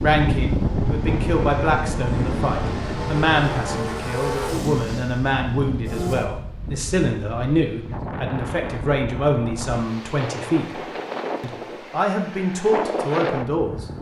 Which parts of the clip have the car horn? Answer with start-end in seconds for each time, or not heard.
not heard.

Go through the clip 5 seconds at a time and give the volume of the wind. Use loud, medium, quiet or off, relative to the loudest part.
loud, medium, loud.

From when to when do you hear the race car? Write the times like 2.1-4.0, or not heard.
0.0-6.2.